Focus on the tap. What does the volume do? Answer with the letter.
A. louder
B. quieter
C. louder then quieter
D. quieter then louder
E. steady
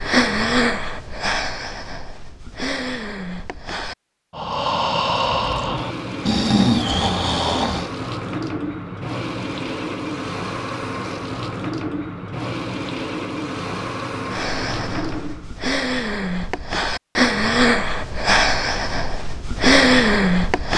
E.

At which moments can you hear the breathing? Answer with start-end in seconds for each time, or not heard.
0.0-7.9, 14.3-20.7.